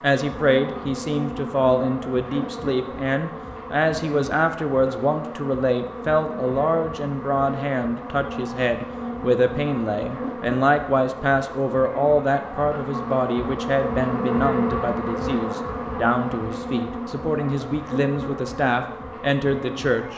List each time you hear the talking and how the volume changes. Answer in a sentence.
You can hear the talking from 0.0 to 20.1 s, at a steady volume.